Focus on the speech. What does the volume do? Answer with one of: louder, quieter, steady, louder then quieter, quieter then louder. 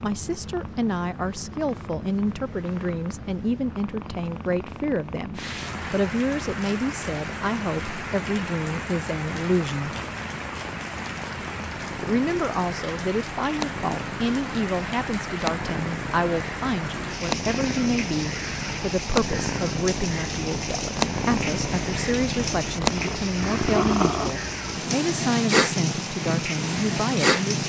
steady.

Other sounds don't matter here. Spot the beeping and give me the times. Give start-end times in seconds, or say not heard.
not heard.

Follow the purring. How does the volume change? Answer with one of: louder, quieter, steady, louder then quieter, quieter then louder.
louder.